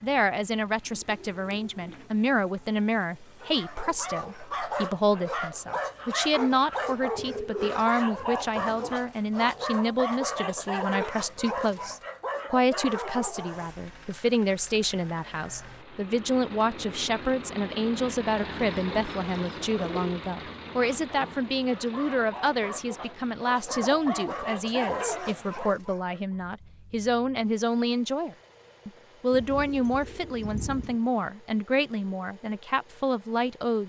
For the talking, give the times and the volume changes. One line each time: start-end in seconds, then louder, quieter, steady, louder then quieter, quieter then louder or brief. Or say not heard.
0.0-33.8 steady.